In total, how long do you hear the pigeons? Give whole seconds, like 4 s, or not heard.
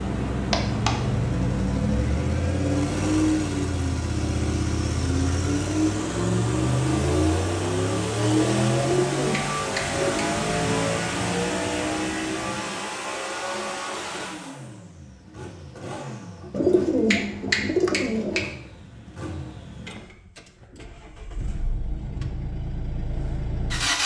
4 s.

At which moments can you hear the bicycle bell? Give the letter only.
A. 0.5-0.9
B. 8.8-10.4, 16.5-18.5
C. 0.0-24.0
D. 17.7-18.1
A.